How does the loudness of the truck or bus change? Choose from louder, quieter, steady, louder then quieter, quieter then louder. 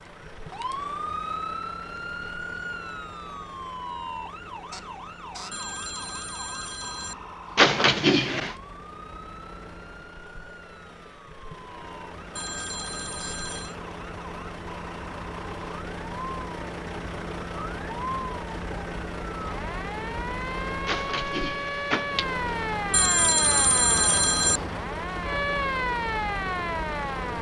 louder.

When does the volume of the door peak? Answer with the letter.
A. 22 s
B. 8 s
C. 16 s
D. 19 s
B.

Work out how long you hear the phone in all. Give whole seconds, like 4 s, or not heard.
5 s.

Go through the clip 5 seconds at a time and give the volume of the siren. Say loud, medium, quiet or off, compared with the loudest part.
medium, quiet, quiet, medium, loud, loud.